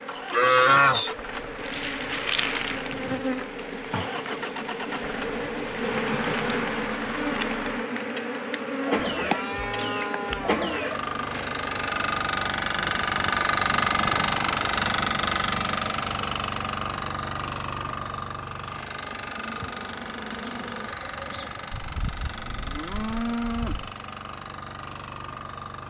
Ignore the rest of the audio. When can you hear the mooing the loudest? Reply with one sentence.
The loudest moment of the mooing is at 1 second.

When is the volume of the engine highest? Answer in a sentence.
The loudest moment of the engine is at 14 seconds.